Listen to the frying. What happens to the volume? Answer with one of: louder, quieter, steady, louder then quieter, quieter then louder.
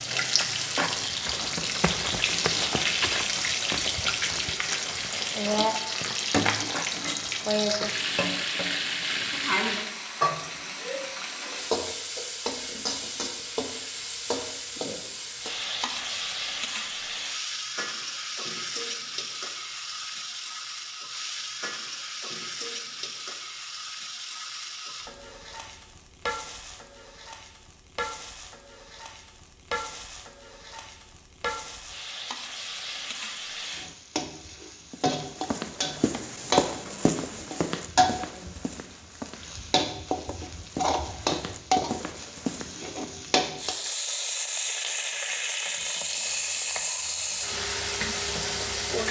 quieter then louder.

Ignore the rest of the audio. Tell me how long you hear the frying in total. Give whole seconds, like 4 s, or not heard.
49 s.